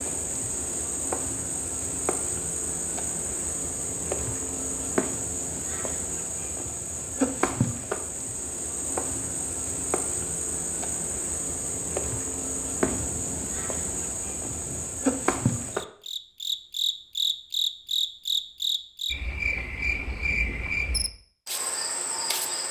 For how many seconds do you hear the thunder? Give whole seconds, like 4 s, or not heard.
2 s.